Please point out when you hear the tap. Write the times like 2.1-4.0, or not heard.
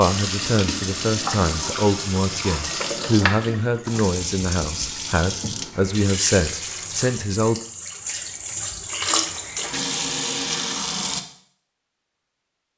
0.0-11.2.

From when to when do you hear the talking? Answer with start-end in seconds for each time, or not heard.
0.0-7.5.